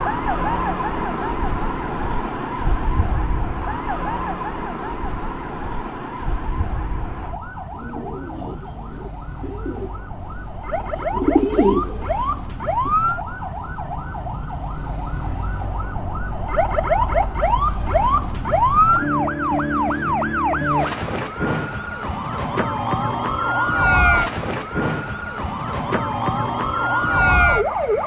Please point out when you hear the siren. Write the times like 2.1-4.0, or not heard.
0.0-28.0.